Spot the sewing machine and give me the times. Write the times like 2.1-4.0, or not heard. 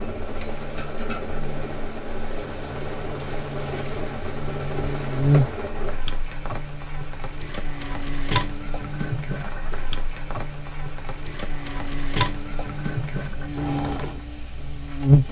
0.0-15.2.